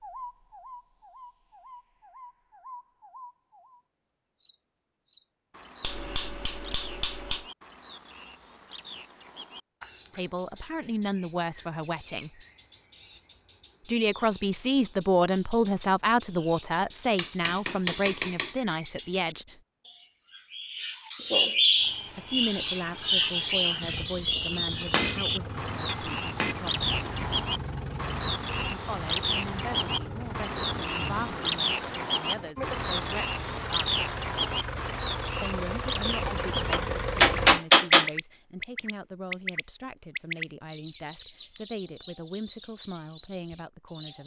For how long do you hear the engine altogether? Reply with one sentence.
The engine can be heard for 16 seconds in total.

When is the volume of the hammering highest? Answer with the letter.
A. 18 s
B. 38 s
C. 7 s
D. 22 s
B.